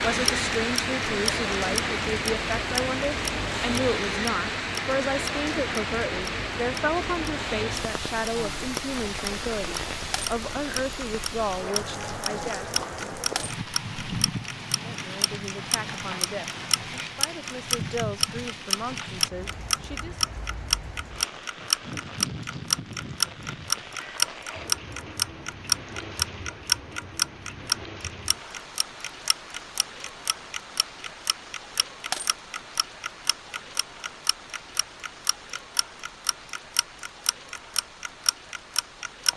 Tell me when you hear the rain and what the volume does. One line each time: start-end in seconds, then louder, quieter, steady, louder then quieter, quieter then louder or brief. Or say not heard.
0.0-39.3 quieter.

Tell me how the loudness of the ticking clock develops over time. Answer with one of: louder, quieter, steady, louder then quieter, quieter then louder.
louder then quieter.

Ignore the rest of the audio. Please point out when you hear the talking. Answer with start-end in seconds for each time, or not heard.
0.0-12.7, 14.8-20.2.